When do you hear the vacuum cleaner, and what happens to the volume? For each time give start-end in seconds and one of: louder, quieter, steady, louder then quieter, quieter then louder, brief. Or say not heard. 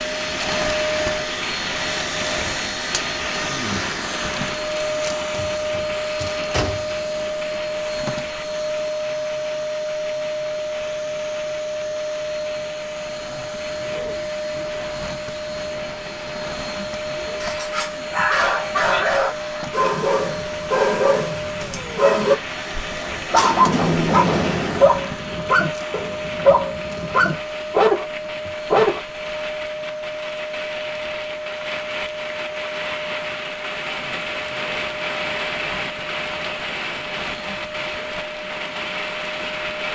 0.0-39.9 quieter.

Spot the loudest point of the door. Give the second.
24 s.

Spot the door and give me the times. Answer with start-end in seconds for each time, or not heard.
5.3-7.0, 23.3-24.9.